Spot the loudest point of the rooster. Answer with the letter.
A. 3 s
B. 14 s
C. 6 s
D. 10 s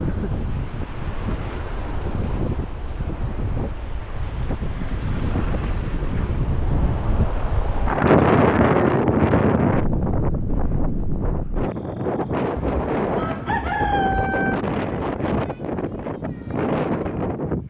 B.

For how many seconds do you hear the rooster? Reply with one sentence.
You can hear the rooster for 2 seconds altogether.